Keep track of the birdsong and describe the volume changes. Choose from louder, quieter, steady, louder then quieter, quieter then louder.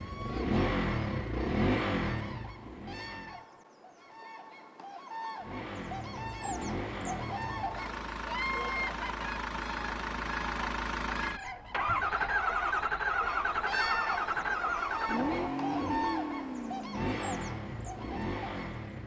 louder.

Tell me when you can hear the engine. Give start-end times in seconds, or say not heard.
0.0-3.5, 5.4-19.0.